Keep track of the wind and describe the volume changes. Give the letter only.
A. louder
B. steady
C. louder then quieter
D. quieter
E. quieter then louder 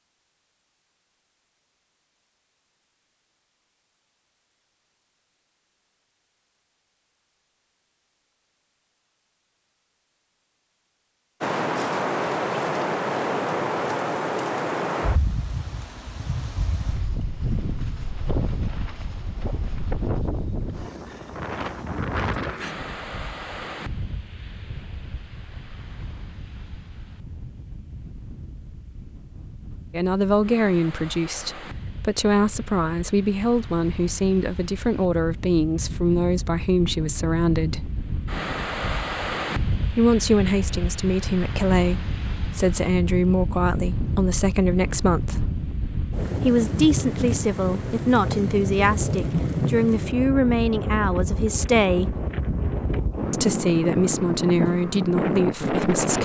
E.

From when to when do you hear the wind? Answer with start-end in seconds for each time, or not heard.
11.4-56.2.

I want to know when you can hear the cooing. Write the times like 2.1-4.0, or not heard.
not heard.